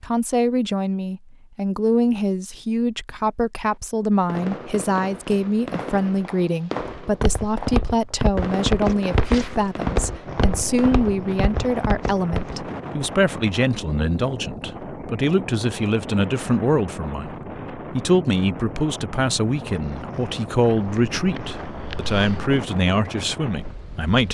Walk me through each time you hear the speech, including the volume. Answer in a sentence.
You can hear the speech from 0.0 to 24.2 s, at a steady volume.